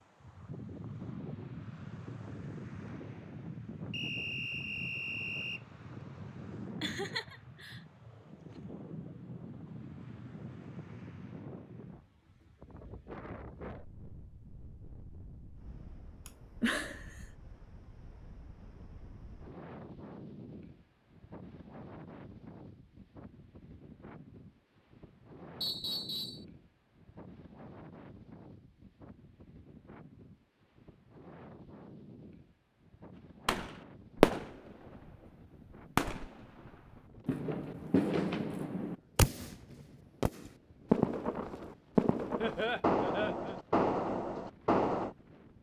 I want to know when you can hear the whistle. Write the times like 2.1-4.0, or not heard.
3.9-5.6, 25.6-26.4.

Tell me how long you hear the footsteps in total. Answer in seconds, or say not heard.
not heard.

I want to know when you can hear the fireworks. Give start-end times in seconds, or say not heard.
33.5-35.1, 36.0-45.1.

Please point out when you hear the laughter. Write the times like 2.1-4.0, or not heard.
6.8-7.8, 16.2-17.1, 42.4-43.5.